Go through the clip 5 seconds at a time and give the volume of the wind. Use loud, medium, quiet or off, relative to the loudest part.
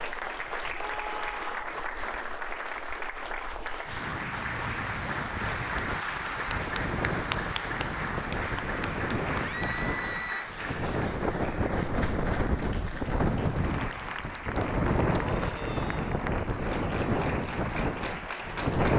quiet, medium, loud, loud.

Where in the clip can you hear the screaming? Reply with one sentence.
The screaming can be heard from 0.7 to 1.8 s, from 9.4 to 10.5 s and from 15.2 to 16.3 s.